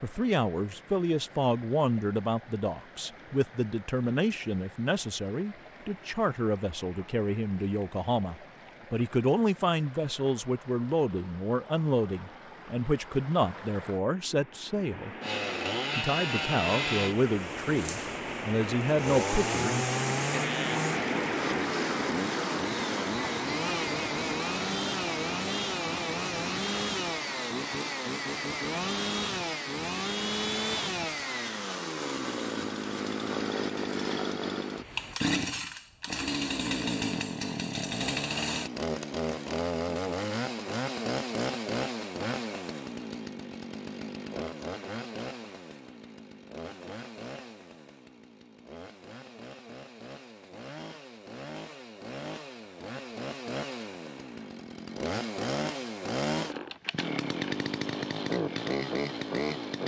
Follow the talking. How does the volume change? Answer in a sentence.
The volume of the talking stays about the same.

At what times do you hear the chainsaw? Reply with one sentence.
The chainsaw can be heard from 15.2 to 59.8 s.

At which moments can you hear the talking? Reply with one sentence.
You can hear the talking from 0.0 to 15.2 s and from 15.9 to 19.9 s.